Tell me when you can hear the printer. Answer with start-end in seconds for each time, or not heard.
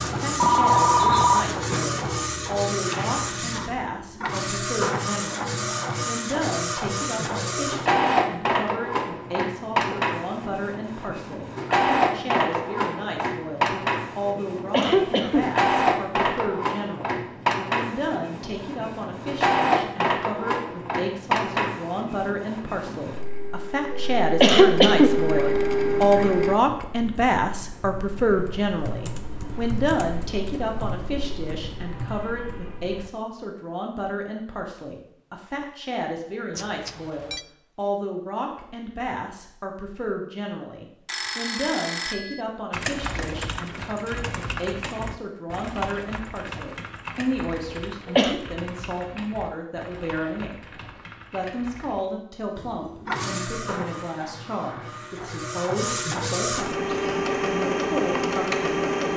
0.0-26.6, 52.5-59.1.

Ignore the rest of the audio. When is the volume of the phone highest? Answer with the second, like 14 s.
1 s.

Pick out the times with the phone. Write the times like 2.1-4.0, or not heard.
0.4-1.6, 36.5-37.5, 41.0-42.4.